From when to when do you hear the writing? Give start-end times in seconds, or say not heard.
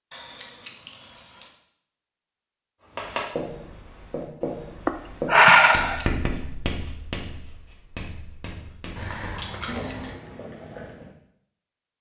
2.9-11.1.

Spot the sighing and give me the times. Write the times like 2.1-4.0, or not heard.
4.8-6.0.